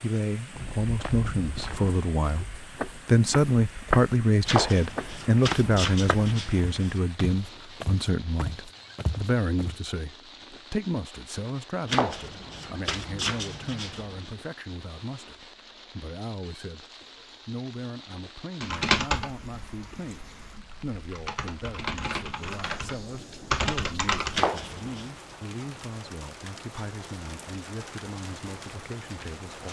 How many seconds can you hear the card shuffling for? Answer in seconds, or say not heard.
6 s.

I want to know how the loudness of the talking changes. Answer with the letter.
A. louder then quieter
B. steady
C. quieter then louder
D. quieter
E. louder
D.